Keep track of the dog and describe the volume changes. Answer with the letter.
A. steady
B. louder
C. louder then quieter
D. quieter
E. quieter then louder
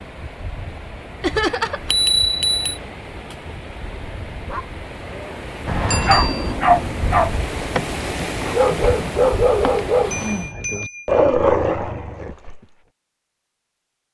A.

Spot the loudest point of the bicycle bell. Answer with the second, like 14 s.
2 s.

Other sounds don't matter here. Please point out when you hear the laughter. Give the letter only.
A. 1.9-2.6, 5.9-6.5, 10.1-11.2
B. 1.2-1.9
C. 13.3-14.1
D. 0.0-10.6
B.